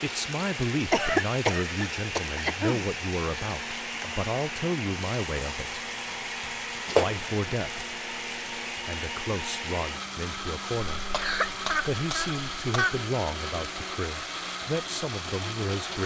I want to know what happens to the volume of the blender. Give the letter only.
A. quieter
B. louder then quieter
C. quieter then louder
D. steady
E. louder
D.